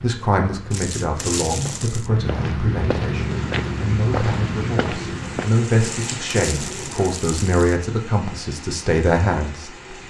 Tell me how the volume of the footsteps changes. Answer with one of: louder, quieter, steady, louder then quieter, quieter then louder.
louder.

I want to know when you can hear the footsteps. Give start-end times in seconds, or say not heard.
0.0-5.5.